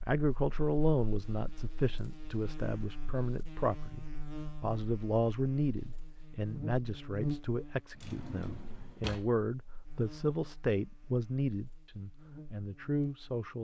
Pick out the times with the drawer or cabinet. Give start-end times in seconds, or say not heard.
8.0-9.8.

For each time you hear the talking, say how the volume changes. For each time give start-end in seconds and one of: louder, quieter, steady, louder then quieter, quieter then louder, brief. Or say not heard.
0.1-13.5 steady.